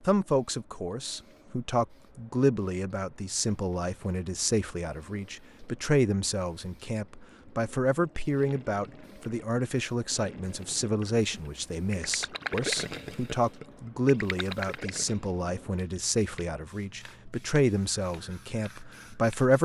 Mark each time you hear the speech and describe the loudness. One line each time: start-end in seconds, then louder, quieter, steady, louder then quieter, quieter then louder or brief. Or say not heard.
0.1-19.6 steady.